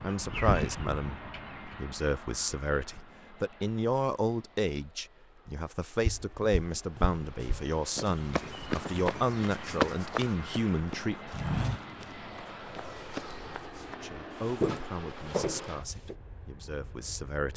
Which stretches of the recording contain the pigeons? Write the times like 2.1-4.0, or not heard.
0.0-1.8.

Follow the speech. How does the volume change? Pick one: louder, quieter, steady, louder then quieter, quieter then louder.
quieter.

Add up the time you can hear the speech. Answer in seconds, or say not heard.
15 s.